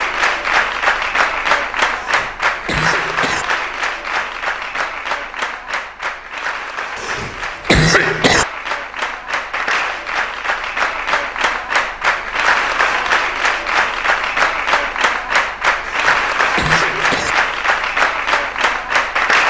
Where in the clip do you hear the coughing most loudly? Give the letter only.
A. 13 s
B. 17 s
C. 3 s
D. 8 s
D.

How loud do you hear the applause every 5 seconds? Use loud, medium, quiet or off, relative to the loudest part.
loud, medium, loud, loud.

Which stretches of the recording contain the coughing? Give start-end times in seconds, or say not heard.
1.9-3.5, 7.0-8.4, 15.8-17.4.